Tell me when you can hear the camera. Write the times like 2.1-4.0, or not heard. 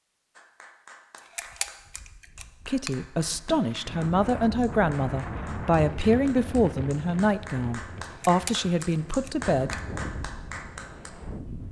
1.1-3.0, 8.0-9.8.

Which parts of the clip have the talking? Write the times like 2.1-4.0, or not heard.
2.6-9.8.